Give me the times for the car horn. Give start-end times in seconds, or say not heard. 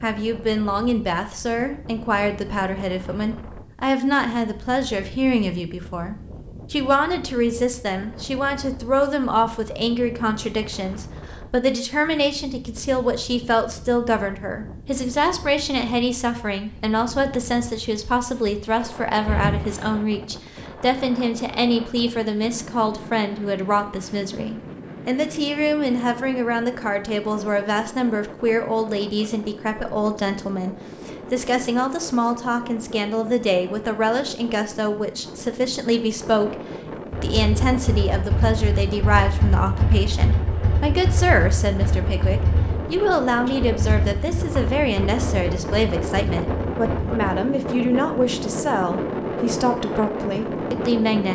19.2-19.9.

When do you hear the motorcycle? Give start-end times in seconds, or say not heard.
37.1-47.2.